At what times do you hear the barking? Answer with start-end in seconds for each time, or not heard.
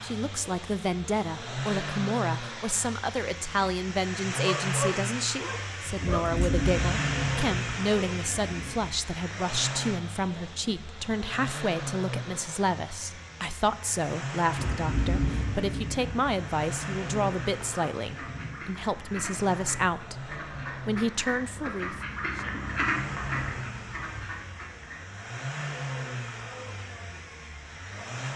4.4-6.3.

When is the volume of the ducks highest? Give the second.
23 s.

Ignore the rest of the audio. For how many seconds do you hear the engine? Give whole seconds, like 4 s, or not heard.
28 s.